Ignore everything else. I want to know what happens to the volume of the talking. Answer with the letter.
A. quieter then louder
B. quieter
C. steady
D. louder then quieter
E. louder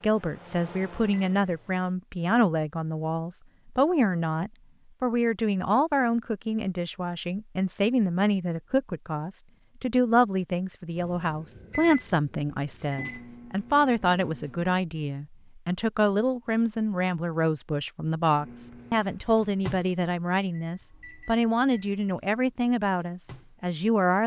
C.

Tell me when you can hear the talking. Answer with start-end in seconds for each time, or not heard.
0.0-24.2.